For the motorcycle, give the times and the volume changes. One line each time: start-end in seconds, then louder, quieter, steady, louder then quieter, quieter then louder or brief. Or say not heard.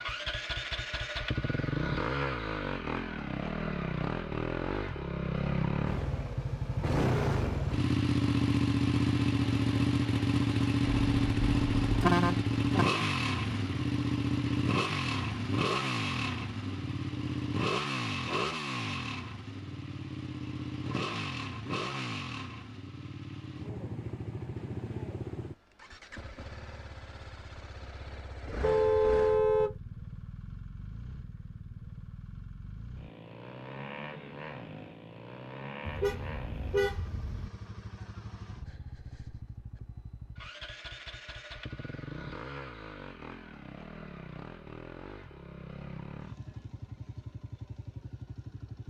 0.0-48.8 quieter.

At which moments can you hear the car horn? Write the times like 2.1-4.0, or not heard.
10.8-12.8, 28.6-29.8, 35.9-37.5.